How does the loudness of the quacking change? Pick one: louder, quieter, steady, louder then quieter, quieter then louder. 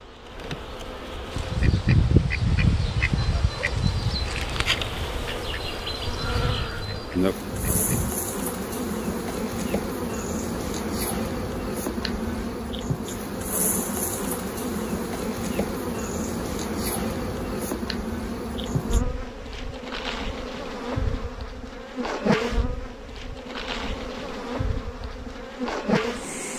quieter.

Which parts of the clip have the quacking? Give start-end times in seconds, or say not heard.
1.3-8.2.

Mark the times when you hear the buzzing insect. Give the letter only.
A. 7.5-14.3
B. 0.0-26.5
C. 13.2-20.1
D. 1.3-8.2
B.